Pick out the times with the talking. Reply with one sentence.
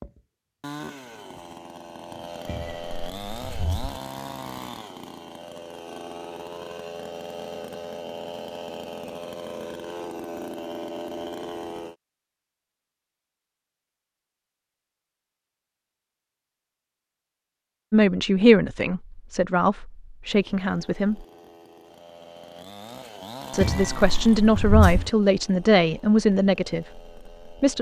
You can hear the talking from 17.9 to 21.2 s and from 23.5 to 27.7 s.